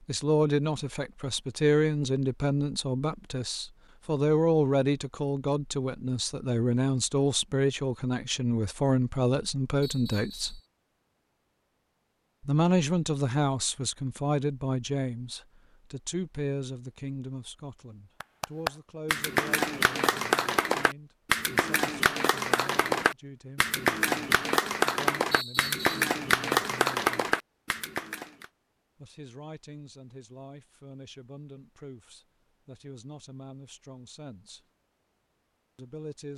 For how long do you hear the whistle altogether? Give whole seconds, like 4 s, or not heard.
2 s.